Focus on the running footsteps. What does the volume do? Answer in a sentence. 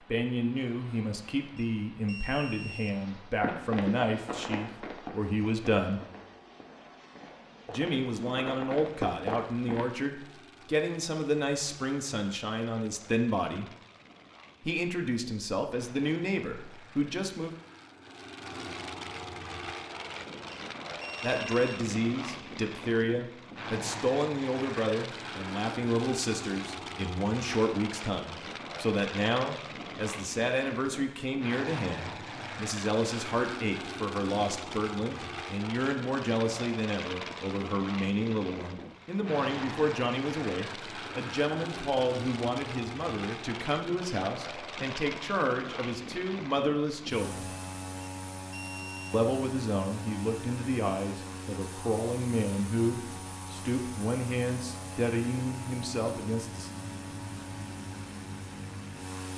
The loudness of the running footsteps goes down, then up.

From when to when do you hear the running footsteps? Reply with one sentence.
You can hear the running footsteps from 3.4 to 9.8 s.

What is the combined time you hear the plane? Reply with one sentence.
The plane can be heard for 59 seconds in total.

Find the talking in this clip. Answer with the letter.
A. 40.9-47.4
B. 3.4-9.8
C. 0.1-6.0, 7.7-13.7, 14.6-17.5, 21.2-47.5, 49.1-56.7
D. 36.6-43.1
C.